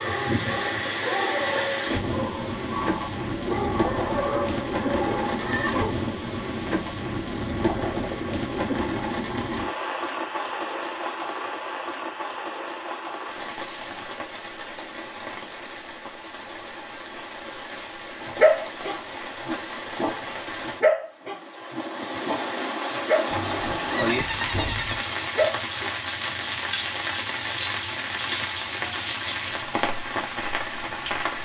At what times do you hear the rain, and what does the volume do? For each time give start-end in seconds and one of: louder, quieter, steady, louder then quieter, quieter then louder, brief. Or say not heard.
0.0-31.4 quieter then louder.